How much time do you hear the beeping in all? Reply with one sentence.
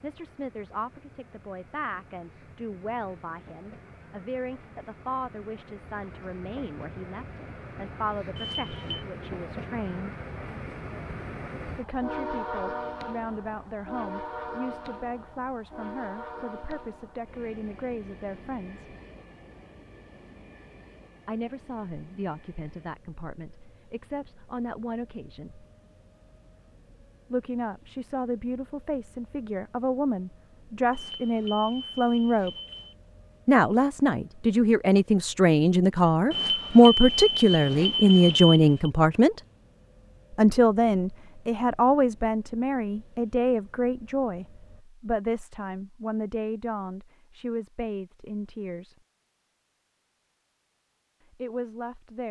You can hear the beeping for 5 seconds altogether.